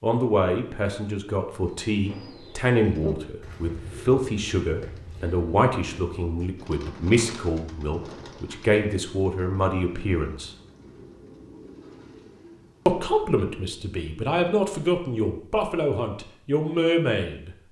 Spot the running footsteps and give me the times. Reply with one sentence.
The running footsteps can't be heard in this clip.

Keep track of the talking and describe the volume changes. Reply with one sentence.
The loudness of the talking stays about the same.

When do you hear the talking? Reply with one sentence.
You can hear the talking from 0.0 to 10.5 s and from 12.8 to 17.6 s.